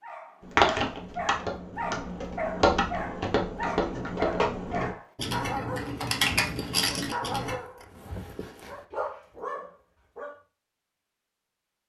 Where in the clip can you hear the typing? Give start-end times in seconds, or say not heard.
0.4-7.5.